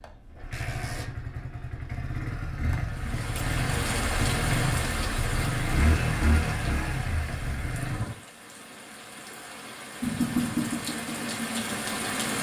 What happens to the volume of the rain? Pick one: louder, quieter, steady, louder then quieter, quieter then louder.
quieter then louder.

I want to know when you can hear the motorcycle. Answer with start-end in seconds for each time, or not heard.
0.0-8.2, 10.0-12.3.